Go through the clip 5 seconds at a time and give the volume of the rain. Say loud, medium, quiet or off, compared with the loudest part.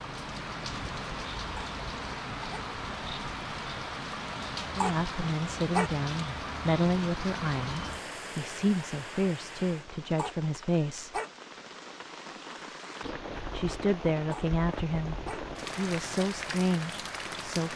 loud, loud, medium, loud.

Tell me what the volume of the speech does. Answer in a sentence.
The loudness of the speech stays about the same.